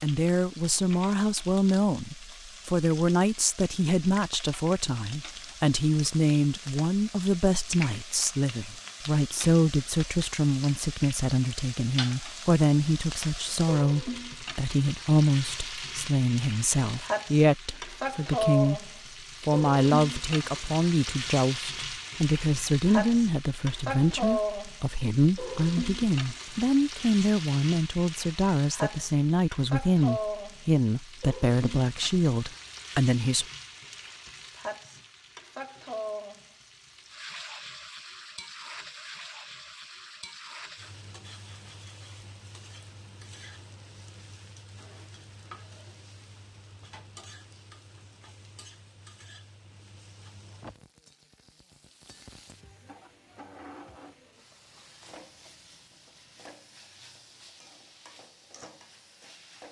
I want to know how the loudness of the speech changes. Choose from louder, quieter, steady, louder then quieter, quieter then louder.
steady.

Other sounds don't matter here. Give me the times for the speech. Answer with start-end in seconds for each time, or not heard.
0.0-33.5.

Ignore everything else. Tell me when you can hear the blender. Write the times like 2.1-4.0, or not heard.
not heard.